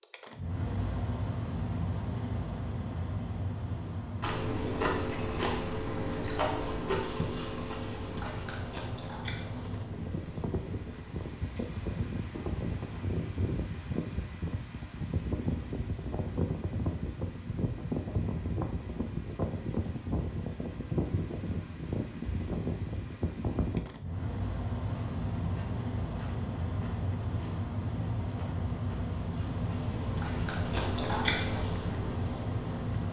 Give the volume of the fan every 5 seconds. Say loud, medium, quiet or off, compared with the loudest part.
loud, medium, loud, loud, loud, loud, loud.